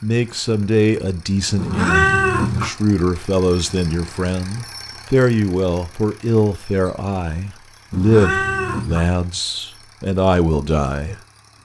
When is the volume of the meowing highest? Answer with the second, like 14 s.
2 s.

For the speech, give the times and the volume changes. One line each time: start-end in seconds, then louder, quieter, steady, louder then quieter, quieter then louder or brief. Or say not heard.
0.0-11.2 steady.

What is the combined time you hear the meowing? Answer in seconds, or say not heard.
2 s.